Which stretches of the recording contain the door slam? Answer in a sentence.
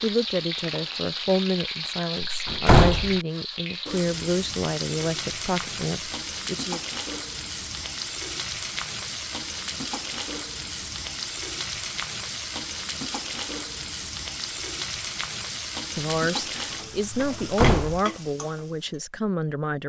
The door slam can be heard from 2.2 to 3.1 s and from 17.2 to 18.0 s.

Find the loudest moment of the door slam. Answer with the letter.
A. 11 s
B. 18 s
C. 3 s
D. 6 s
C.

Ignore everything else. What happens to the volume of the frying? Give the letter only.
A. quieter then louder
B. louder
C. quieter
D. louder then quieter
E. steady
E.